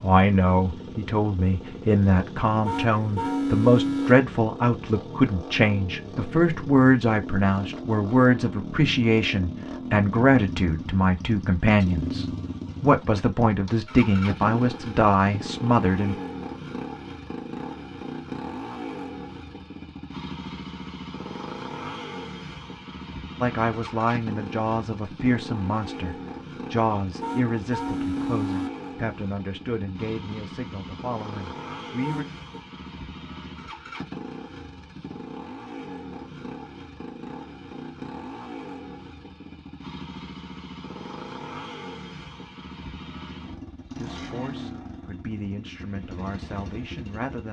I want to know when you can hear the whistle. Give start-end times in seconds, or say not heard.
not heard.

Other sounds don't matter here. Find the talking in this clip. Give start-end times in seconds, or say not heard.
0.0-16.1, 23.4-32.2, 44.0-47.4.